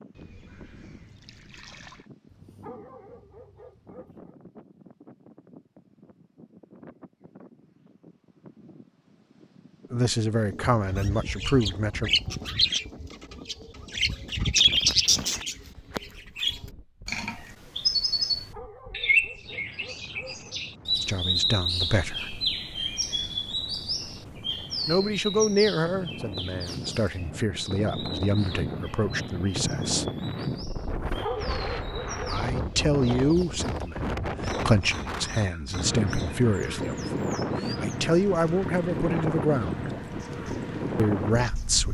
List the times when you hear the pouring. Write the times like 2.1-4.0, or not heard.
0.1-2.1.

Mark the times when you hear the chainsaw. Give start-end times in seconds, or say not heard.
not heard.